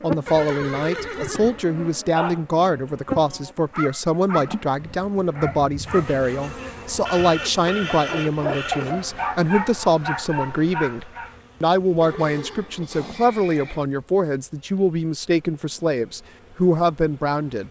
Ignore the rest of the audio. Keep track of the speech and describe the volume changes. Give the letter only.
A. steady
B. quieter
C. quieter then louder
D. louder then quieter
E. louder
A.